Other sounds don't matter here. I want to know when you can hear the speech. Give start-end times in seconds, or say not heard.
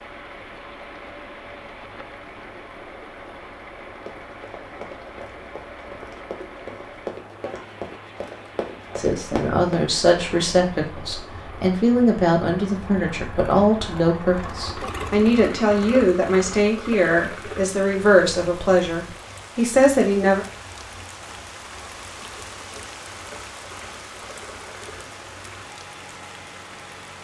8.9-20.4.